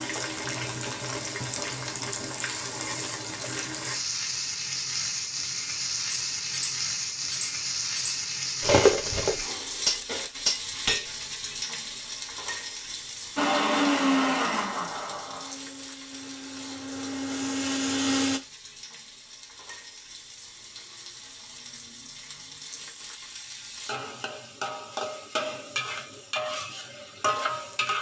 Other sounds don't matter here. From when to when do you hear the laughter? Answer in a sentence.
You can't hear the laughter here.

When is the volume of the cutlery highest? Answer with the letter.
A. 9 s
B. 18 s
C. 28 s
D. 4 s
A.